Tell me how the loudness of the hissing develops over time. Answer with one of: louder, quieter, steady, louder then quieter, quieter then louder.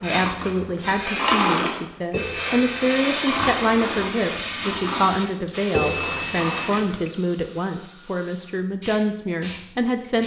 quieter.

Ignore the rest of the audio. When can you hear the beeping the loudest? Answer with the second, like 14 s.
6 s.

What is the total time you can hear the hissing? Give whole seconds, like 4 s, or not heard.
10 s.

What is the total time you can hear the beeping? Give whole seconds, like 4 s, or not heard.
3 s.